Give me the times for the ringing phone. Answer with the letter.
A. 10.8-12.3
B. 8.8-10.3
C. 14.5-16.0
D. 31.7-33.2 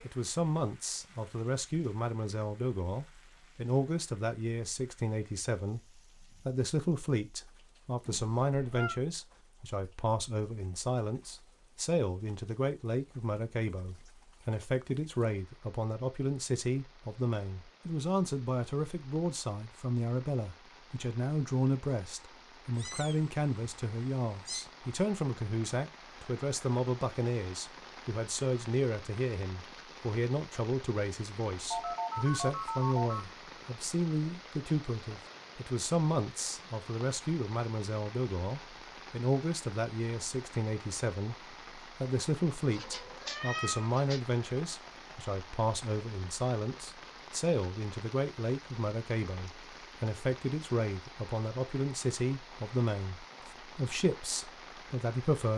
D.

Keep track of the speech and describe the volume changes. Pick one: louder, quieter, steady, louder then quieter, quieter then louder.
steady.